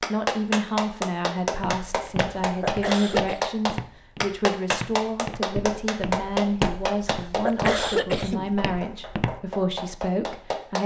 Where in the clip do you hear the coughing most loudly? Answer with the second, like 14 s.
8 s.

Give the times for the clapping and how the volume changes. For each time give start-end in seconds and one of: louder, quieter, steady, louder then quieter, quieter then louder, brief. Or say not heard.
0.0-8.0 steady
8.6-10.8 brief.